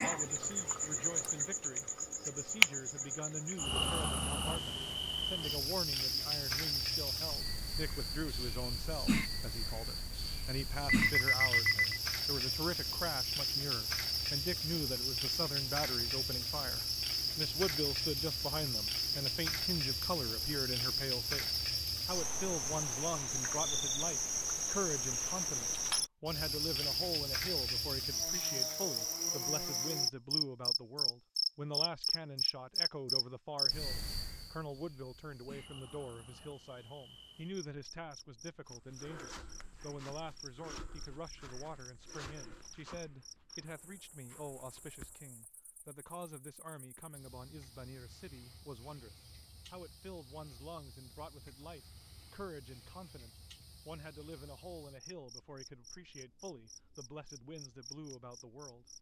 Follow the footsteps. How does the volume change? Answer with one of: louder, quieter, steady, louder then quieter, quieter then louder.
quieter.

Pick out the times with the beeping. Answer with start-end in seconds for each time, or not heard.
10.8-12.0.